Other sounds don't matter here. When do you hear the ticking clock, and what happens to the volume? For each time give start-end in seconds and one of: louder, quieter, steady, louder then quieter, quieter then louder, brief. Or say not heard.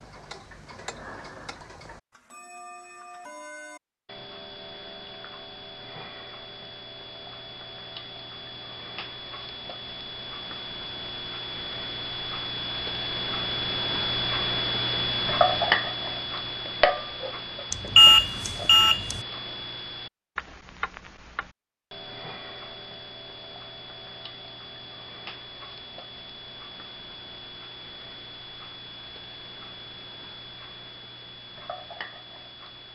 0.0-32.8 louder then quieter.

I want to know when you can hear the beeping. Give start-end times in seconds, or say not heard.
17.7-19.2.